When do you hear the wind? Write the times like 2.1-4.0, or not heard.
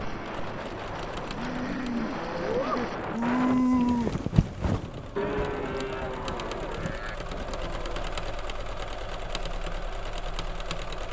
0.0-7.0.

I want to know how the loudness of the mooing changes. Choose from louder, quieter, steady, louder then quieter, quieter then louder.
louder then quieter.